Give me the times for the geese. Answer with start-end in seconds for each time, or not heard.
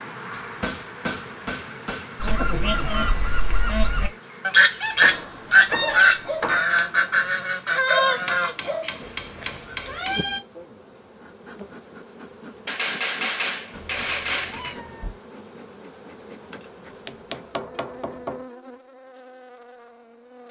2.2-8.9.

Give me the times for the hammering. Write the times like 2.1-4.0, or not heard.
0.3-2.4, 5.0-6.6, 8.2-10.2, 12.7-14.8, 16.5-18.4.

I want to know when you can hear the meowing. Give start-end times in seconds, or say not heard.
2.4-3.1, 9.0-10.4, 13.7-15.2.